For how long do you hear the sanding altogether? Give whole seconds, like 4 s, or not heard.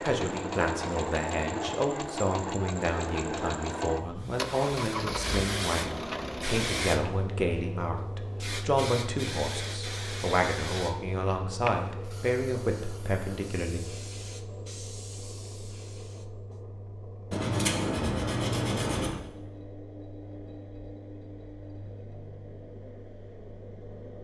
2 s.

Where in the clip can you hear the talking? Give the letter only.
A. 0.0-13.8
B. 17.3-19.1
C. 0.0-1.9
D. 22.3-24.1
A.